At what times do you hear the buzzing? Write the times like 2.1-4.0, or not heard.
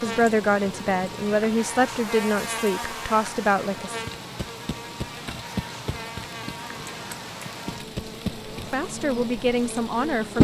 0.0-10.3.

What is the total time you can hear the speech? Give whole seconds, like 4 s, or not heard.
6 s.